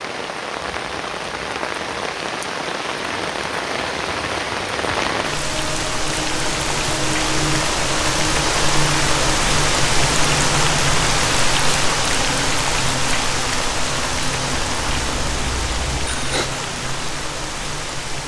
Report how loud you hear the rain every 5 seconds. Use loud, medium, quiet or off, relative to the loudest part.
medium, loud, loud, medium.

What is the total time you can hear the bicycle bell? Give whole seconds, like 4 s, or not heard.
2 s.